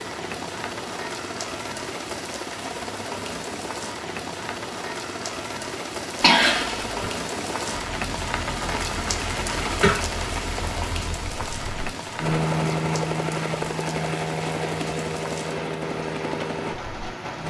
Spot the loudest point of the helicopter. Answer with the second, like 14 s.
13 s.